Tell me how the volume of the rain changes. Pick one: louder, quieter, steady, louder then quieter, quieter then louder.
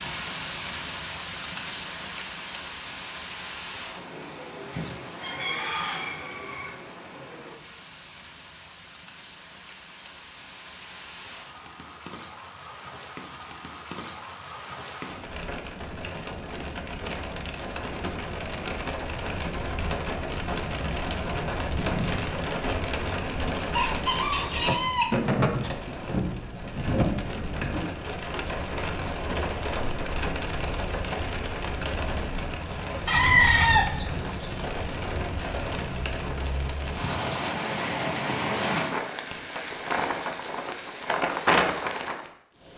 louder.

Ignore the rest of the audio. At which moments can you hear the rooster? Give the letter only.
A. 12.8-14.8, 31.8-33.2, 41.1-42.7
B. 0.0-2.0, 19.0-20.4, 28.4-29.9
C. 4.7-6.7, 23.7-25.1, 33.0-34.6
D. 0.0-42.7
C.